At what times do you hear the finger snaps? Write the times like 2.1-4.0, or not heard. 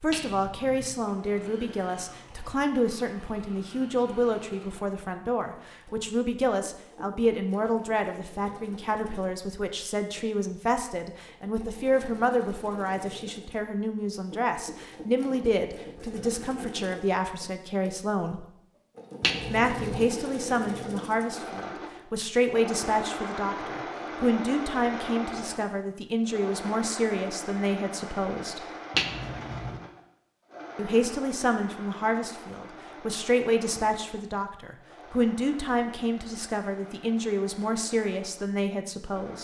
0.1-0.9, 19.2-20.1, 28.9-29.8.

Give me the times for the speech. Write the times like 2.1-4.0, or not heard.
0.0-18.4, 19.5-28.6, 30.8-39.3.